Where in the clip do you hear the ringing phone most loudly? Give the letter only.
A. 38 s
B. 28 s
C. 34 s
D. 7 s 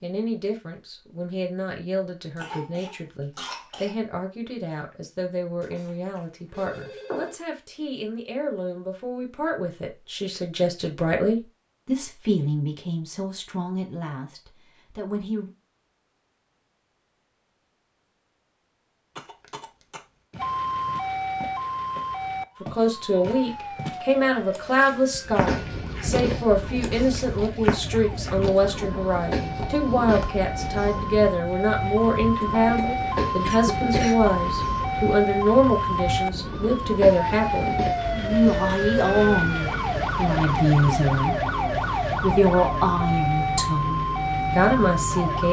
D.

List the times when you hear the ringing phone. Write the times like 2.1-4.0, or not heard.
5.6-7.3.